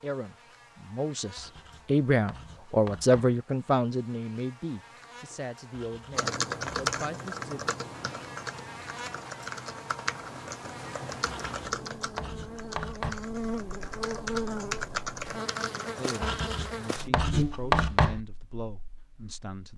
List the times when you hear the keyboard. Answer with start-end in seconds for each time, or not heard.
6.2-16.4.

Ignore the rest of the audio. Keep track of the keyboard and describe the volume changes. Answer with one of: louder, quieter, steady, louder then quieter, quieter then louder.
quieter then louder.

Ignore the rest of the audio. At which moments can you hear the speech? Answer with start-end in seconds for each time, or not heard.
0.0-7.8, 15.9-19.7.